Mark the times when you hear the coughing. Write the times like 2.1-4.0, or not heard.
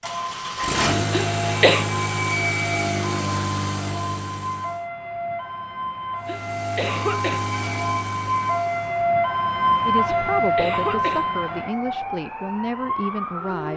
1.1-1.9, 6.2-7.5, 10.1-11.3.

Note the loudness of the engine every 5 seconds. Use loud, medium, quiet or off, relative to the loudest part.
loud, medium, off.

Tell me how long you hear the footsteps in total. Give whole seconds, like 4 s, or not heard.
not heard.